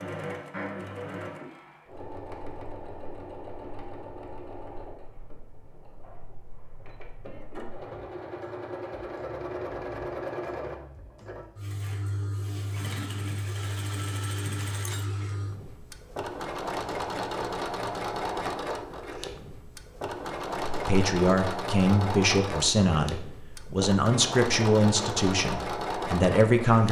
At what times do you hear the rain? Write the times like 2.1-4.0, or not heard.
not heard.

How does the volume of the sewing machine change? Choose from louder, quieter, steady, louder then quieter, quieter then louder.
louder.